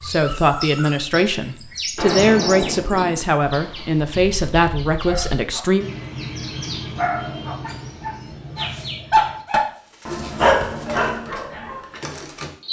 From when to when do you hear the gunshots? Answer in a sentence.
You can hear the gunshots from 1.9 to 3.9 s.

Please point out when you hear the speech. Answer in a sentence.
You can hear the speech from 0.0 to 5.8 s.